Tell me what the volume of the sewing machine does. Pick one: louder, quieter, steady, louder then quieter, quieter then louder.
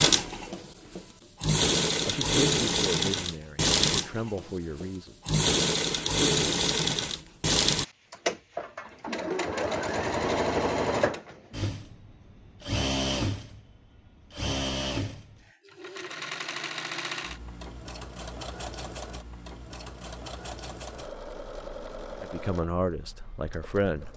quieter.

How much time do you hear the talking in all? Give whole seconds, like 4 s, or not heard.
5 s.